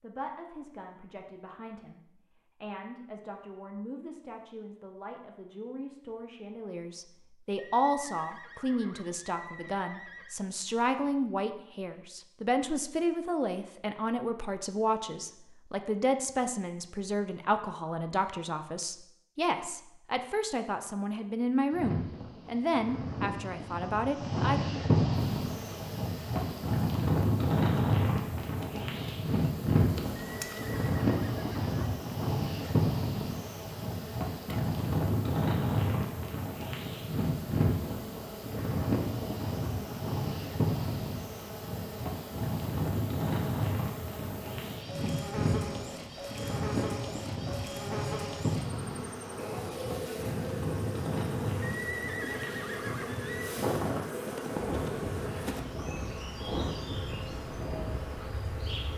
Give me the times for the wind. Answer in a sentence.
You can hear the wind from 21.7 to 58.9 s.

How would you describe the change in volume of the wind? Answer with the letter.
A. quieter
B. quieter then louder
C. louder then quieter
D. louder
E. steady
A.